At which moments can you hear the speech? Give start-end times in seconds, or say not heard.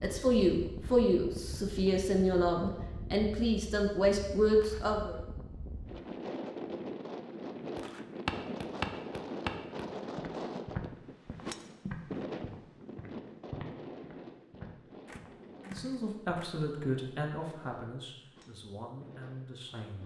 0.0-5.2, 15.7-20.0.